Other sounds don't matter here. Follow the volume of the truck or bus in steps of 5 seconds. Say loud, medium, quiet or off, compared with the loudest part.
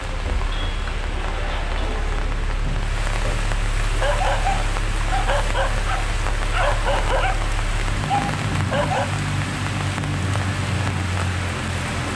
medium, loud, loud.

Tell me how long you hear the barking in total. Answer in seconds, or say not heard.
5 s.